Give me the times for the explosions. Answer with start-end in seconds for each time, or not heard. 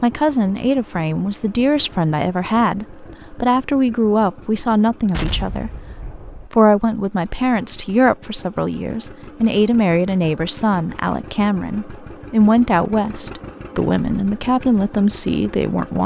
5.1-6.5.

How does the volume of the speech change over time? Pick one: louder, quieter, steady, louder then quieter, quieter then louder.
steady.